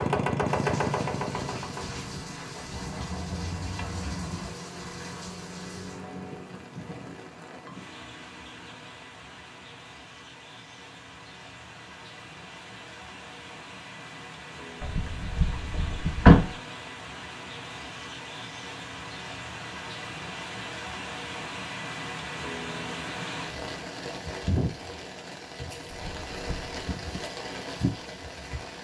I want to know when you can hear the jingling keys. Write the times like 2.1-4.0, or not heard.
2.7-4.5, 14.8-16.5, 25.9-26.6.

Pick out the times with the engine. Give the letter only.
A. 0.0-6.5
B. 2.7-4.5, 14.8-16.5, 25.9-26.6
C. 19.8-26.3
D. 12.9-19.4
A.